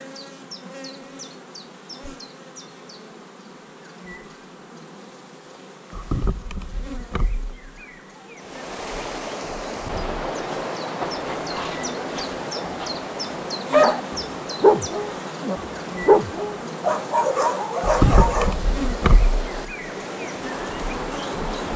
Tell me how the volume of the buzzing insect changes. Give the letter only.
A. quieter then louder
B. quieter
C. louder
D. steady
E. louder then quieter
C.